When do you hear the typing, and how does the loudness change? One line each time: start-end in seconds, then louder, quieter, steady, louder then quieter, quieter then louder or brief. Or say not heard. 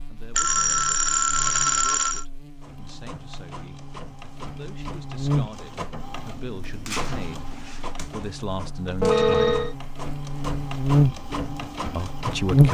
not heard.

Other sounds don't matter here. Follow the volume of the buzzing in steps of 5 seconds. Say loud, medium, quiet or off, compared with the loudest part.
quiet, medium, loud.